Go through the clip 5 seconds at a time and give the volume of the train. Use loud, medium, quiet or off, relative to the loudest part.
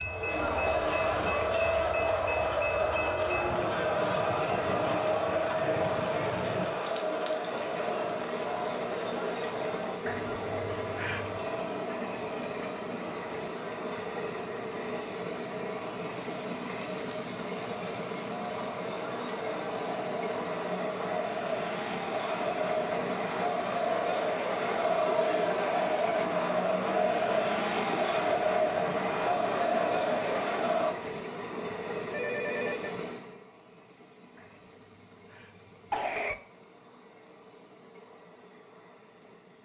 loud, loud, loud, loud, loud, loud, loud, quiet.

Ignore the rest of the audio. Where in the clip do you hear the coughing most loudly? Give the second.
36 s.